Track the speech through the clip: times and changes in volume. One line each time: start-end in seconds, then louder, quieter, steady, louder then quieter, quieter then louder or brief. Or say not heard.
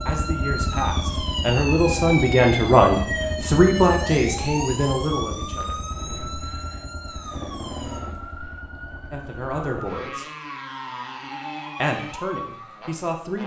0.1-5.8 louder then quieter
9.1-10.2 brief
11.8-13.4 brief.